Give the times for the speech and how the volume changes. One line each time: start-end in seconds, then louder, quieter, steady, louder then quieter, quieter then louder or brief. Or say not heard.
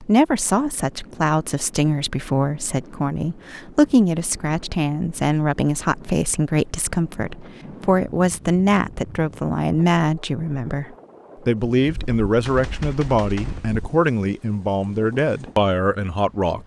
0.0-16.6 steady.